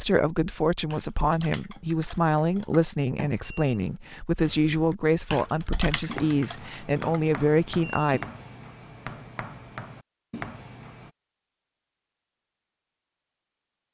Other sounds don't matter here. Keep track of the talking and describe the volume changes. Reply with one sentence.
The volume of the talking stays about the same.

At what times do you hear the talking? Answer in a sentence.
The talking can be heard from 0.0 to 8.2 s.